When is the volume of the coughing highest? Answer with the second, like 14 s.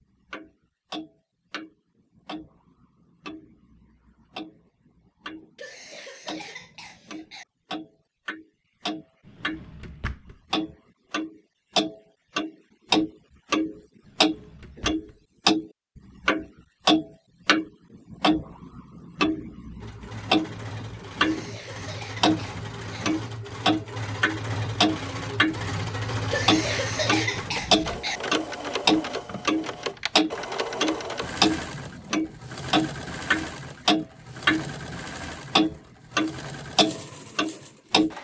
27 s.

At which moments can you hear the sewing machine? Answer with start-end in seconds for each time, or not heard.
19.8-38.1.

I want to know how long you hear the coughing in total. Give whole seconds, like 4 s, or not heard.
6 s.